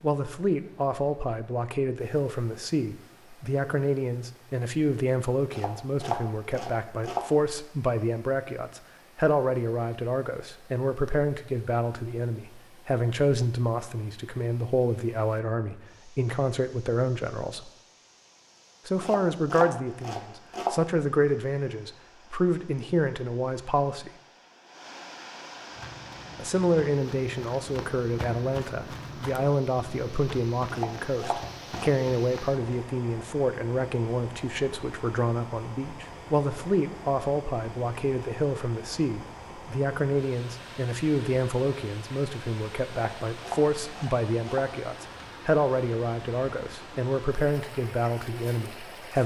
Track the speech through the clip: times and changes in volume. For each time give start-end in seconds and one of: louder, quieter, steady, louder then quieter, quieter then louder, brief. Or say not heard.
0.0-17.7 steady
18.9-24.1 steady
26.4-49.2 steady.